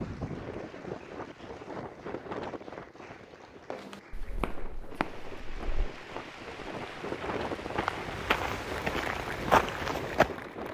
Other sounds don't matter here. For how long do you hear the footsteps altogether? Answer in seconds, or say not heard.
7 s.